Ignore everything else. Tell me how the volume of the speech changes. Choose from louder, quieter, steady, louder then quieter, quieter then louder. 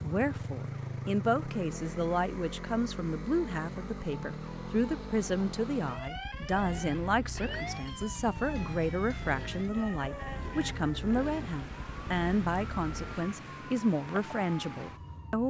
steady.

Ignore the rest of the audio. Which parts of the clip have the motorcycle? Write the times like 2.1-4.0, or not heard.
0.0-13.3.